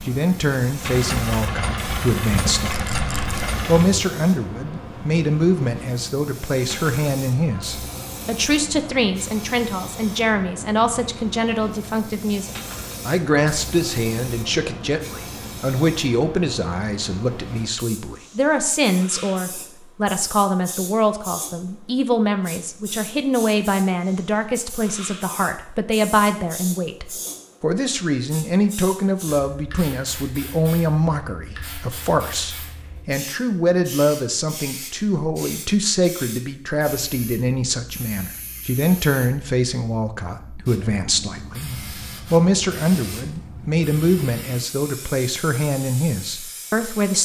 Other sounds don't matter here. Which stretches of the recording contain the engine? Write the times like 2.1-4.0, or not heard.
0.0-4.0.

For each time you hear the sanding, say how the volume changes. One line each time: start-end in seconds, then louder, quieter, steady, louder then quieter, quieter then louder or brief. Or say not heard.
not heard.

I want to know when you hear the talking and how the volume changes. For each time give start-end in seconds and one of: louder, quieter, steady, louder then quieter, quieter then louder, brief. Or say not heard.
0.1-47.2 steady.